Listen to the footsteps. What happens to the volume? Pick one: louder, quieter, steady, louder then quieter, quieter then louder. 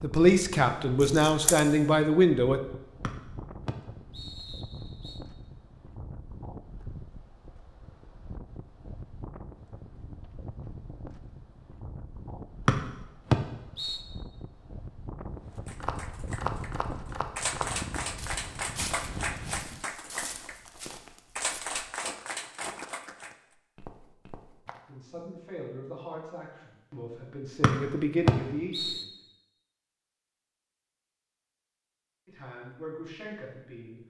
quieter.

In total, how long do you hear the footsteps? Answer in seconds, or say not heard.
9 s.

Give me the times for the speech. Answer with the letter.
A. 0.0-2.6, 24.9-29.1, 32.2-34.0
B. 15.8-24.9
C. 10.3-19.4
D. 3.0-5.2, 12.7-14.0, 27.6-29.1
A.